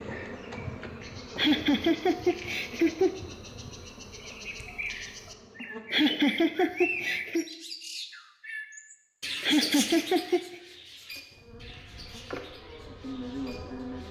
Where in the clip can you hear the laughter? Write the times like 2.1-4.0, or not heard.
1.4-3.1, 5.9-7.5, 9.4-10.4.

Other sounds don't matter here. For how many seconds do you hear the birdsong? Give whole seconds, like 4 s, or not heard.
14 s.